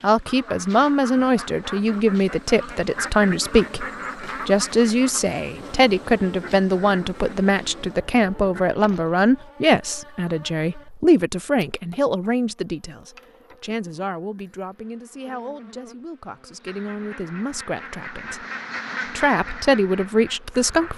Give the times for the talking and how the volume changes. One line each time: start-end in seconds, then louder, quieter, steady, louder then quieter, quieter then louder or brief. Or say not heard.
0.0-18.4 quieter
19.1-20.9 brief.